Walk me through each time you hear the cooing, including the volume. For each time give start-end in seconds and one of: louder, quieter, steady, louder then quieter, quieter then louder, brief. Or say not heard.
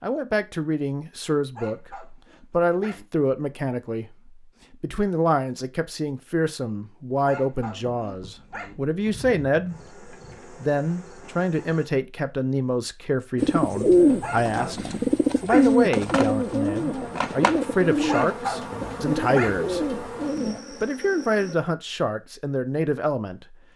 13.3-20.6 quieter.